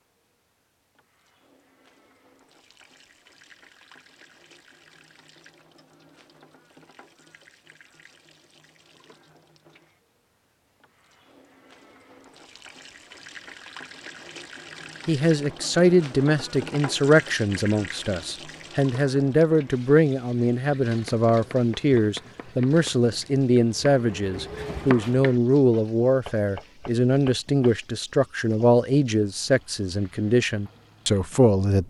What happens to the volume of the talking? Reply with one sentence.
The volume of the talking stays about the same.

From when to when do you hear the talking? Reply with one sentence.
The talking can be heard from 15.1 to 31.8 s.